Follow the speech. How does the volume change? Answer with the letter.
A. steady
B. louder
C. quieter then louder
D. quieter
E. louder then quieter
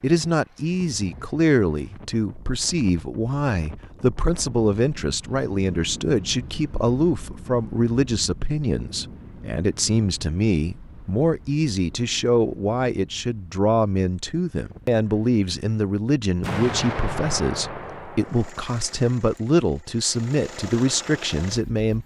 A.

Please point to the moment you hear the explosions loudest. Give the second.
17 s.